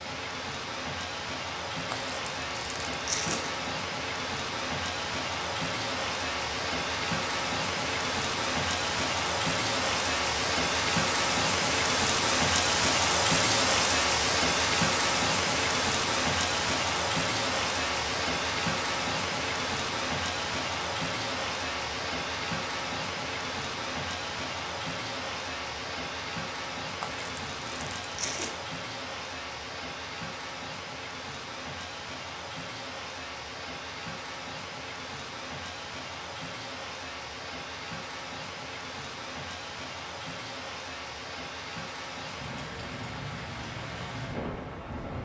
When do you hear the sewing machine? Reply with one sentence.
The sewing machine can't be heard in this clip.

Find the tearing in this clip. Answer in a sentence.
The tearing can be heard from 1.9 to 3.7 s and from 27.0 to 28.6 s.